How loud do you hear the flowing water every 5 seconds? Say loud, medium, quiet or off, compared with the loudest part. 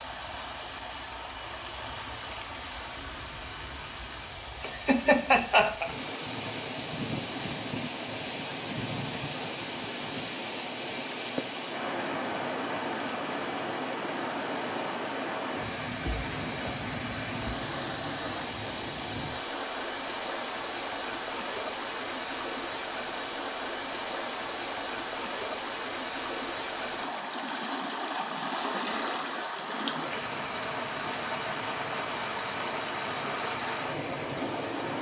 medium, loud, loud, loud, loud, loud, loud.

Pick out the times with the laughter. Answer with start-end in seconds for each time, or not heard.
4.6-6.0.